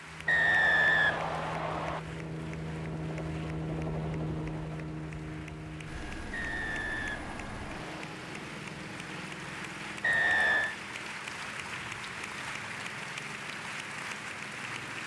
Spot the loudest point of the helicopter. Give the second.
4 s.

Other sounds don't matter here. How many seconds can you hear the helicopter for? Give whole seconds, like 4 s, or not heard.
15 s.